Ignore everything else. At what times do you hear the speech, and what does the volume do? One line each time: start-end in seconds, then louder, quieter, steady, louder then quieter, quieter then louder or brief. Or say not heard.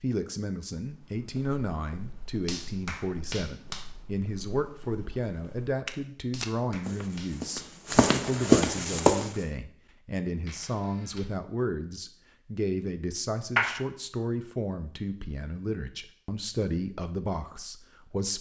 0.0-18.3 steady.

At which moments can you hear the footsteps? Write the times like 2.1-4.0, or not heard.
0.8-9.3.